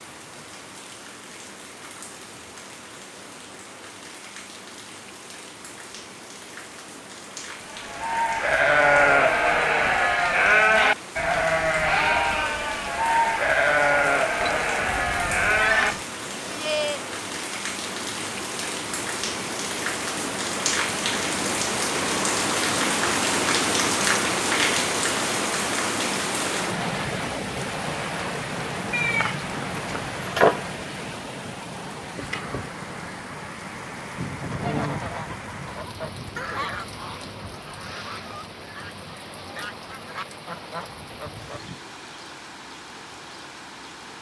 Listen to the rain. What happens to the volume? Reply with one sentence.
The loudness of the rain goes up, then down.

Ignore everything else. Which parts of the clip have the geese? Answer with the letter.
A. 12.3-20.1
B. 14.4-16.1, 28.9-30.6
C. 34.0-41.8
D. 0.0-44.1
C.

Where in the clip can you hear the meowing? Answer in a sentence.
You can hear the meowing from 14.4 to 16.1 s and from 28.9 to 30.6 s.